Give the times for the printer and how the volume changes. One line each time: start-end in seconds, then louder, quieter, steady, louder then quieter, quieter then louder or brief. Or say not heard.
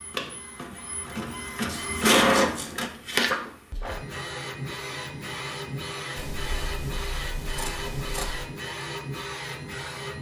0.0-10.1 quieter.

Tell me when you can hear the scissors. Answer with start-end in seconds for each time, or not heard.
1.6-2.9, 6.2-8.5.